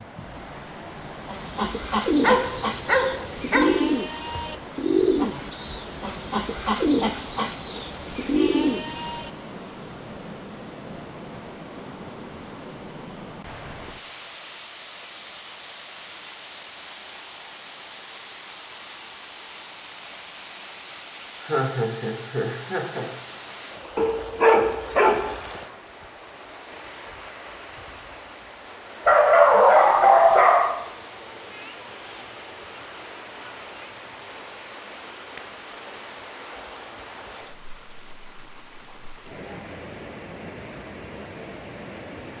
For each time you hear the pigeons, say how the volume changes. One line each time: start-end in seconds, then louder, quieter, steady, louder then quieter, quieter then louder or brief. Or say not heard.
1.2-9.3 steady.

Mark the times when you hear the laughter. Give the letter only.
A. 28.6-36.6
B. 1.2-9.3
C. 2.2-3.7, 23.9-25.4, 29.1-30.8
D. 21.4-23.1
D.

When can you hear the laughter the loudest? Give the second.
22 s.